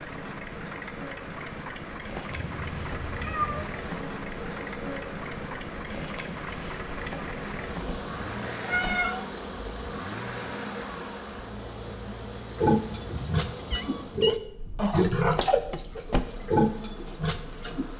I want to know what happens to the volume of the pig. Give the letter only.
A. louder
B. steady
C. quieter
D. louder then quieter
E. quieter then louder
A.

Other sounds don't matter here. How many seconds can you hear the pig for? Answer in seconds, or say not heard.
5 s.